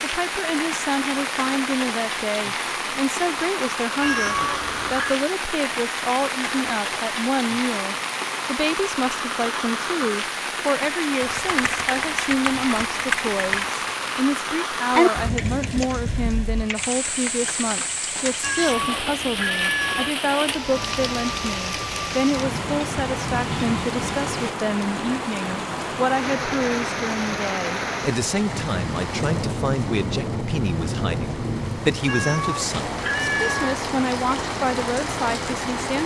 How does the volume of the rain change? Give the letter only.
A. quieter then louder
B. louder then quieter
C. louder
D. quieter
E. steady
E.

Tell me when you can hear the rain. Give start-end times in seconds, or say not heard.
0.0-36.0.